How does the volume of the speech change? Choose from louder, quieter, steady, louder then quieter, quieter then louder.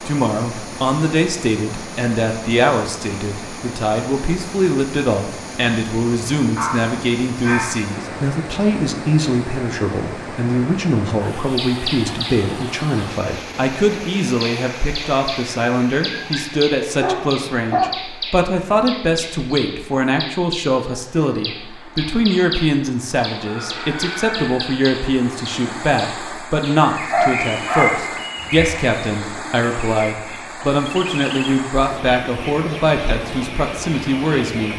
steady.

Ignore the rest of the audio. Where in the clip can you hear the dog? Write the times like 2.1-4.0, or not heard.
6.5-7.8, 16.0-17.9, 27.1-28.7.